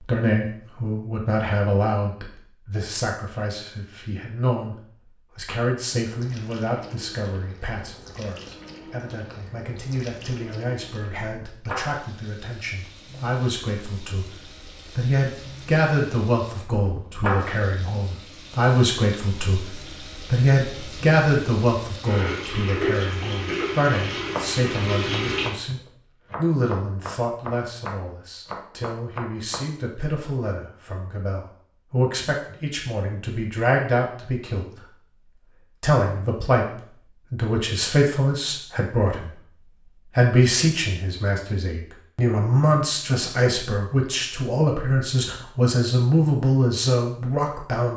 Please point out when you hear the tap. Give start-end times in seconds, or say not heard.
6.0-25.6.